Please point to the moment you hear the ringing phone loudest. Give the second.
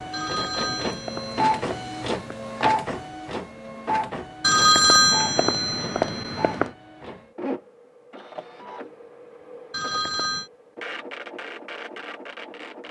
5 s.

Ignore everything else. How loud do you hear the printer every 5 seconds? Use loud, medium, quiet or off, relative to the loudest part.
loud, medium, medium.